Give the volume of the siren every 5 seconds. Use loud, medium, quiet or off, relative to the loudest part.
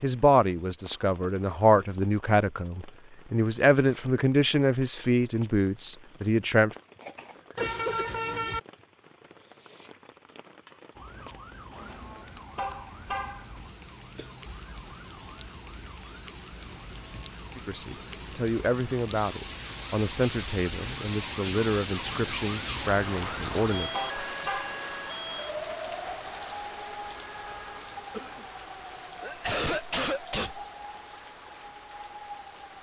off, off, medium, medium, loud, loud, medium.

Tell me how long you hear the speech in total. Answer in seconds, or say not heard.
13 s.